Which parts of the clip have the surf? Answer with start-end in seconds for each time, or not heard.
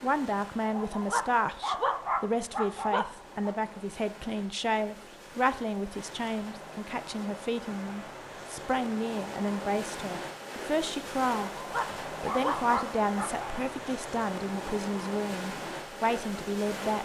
0.0-16.9.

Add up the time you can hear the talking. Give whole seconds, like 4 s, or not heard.
16 s.